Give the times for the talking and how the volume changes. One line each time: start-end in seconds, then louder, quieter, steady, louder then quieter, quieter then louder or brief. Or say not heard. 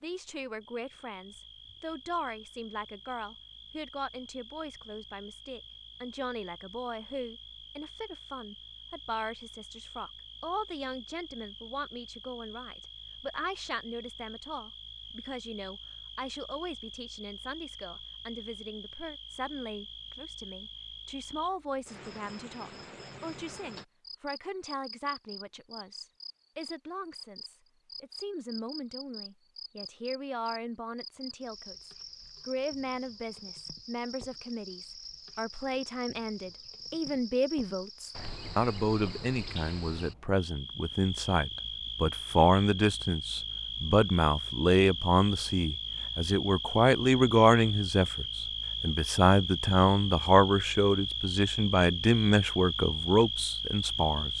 0.0-54.3 louder.